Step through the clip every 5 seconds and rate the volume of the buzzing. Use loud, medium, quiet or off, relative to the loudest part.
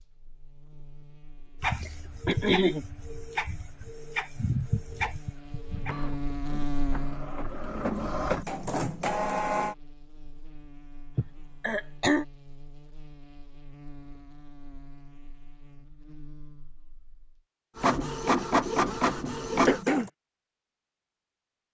quiet, loud, quiet, quiet, off.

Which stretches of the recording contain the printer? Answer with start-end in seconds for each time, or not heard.
1.6-9.8, 17.8-20.1.